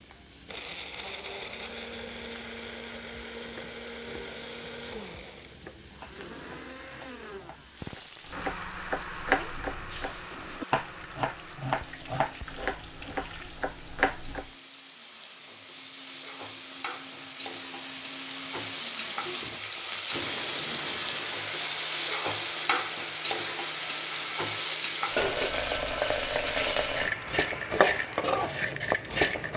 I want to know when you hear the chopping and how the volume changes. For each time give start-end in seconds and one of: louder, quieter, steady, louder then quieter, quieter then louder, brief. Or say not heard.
3.4-14.5 louder.